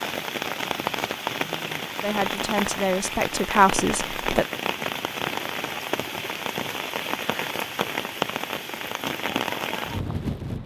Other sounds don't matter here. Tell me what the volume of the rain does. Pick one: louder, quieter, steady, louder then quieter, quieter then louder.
steady.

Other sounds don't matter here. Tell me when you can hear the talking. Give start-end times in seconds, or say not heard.
2.0-4.5.